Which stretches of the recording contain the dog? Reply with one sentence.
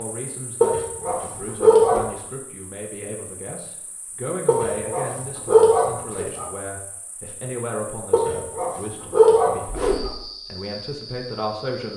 The dog can be heard from 0.6 to 2.0 s, from 4.5 to 6.5 s and from 8.1 to 10.1 s.